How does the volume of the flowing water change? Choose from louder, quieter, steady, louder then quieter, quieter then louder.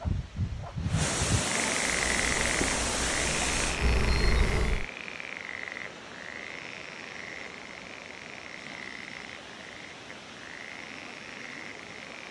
quieter.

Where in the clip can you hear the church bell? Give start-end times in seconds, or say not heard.
not heard.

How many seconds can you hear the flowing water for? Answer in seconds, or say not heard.
12 s.